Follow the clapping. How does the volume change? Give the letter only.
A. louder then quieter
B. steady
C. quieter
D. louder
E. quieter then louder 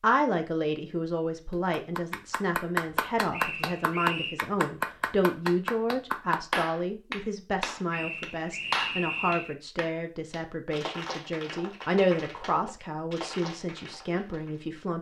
C.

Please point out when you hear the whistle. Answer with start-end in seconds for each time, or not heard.
3.3-4.4, 7.9-9.6.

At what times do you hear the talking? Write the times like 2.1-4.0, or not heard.
0.0-14.9.